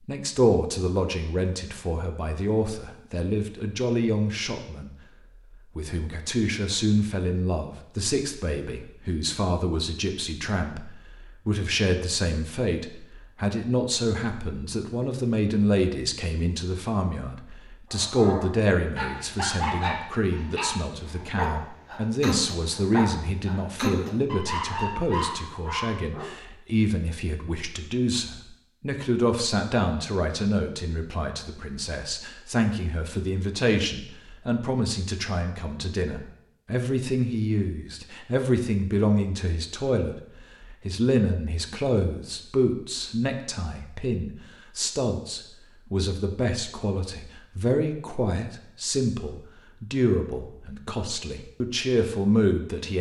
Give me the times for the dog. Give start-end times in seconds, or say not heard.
17.9-26.3.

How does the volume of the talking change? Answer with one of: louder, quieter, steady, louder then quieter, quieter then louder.
steady.